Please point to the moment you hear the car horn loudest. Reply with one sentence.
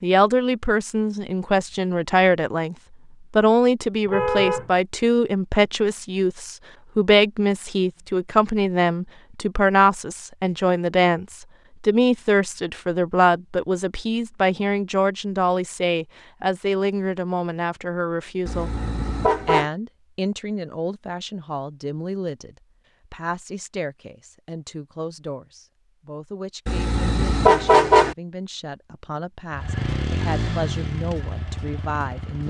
The loudest moment of the car horn is at 28 seconds.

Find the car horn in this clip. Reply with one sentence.
The car horn can be heard from 4.0 to 4.7 s, from 18.4 to 19.7 s and from 26.6 to 28.1 s.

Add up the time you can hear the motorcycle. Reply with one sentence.
You can hear the motorcycle for 3 seconds altogether.